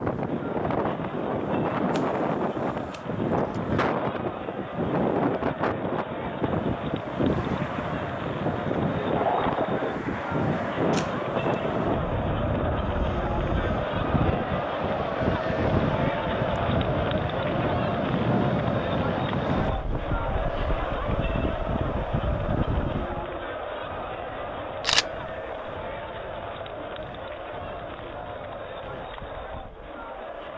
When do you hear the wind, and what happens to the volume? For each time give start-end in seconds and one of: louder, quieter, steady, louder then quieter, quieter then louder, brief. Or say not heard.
0.0-30.5 quieter.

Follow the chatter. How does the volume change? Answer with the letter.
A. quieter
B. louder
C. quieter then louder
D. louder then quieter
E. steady
D.